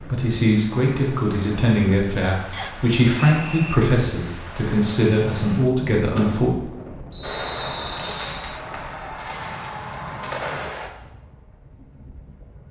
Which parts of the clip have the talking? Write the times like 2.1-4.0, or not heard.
0.0-6.5.